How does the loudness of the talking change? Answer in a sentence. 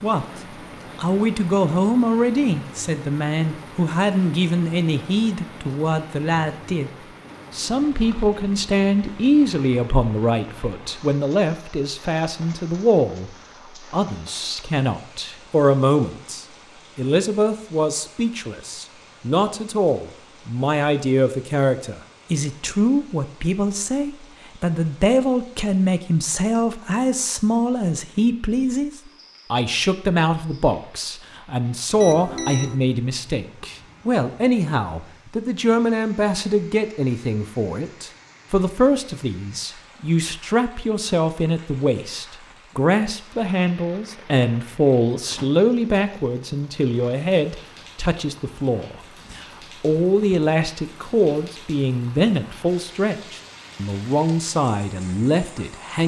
The volume of the talking stays about the same.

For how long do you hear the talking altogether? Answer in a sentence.
The talking can be heard for 55 seconds in total.